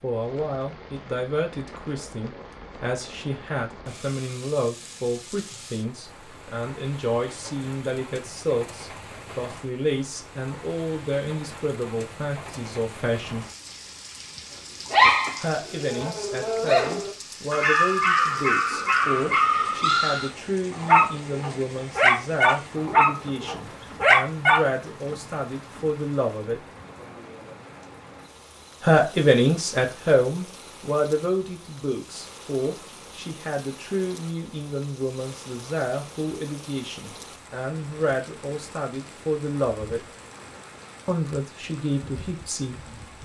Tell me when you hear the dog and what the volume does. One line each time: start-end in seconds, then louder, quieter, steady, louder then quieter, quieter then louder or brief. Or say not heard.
14.9-24.6 louder.